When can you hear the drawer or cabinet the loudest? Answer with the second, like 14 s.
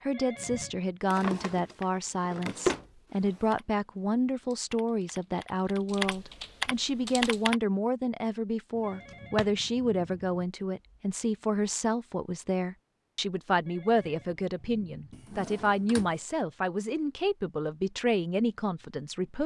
3 s.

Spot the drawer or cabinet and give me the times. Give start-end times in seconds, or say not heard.
1.1-3.5, 8.8-9.6, 15.1-16.2.